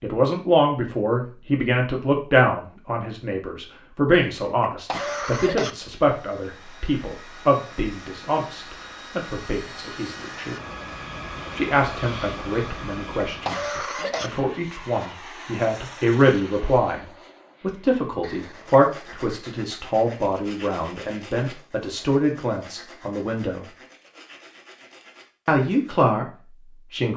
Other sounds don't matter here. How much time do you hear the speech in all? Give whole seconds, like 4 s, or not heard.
24 s.